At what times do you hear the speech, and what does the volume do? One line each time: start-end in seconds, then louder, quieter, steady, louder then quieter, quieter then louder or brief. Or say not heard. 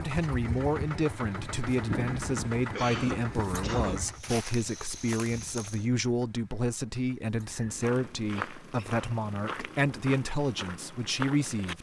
0.0-11.7 steady.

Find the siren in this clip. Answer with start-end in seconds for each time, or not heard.
not heard.